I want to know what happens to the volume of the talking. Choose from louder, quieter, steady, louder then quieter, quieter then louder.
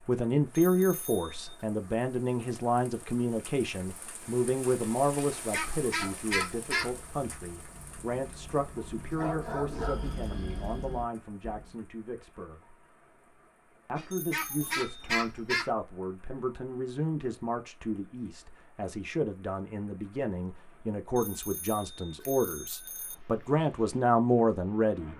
quieter then louder.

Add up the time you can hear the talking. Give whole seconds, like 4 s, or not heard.
24 s.